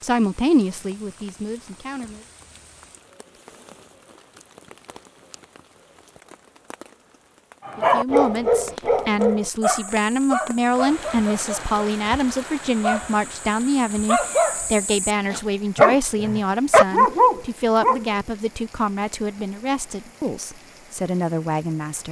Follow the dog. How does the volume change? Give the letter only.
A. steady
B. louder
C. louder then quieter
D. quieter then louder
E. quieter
D.